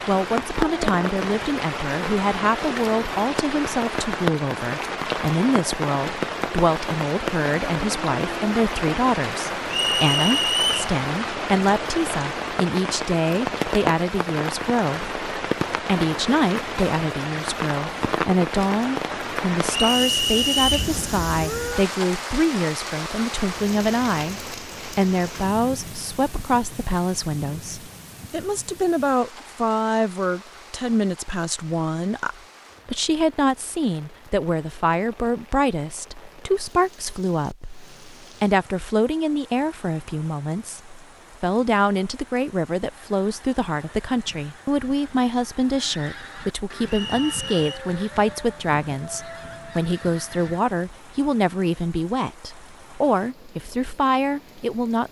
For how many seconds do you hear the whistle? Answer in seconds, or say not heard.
3 s.